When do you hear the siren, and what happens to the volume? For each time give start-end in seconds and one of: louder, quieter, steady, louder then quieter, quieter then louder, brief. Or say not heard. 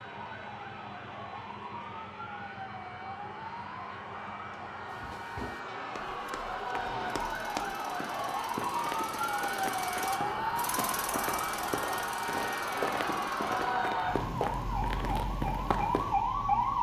0.0-16.7 louder.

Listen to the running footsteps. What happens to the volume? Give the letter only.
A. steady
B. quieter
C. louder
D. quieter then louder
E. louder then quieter
C.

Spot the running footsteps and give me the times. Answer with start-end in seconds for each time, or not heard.
4.9-16.1.